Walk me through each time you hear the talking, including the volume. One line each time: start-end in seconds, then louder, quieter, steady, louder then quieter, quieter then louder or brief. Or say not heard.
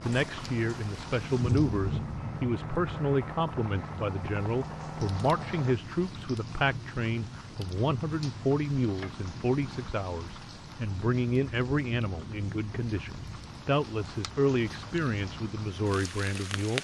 0.0-16.7 steady.